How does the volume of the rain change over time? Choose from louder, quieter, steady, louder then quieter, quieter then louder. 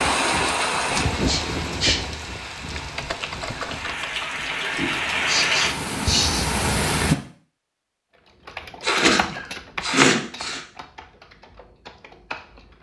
quieter then louder.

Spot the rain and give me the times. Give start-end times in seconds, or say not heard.
0.0-7.2.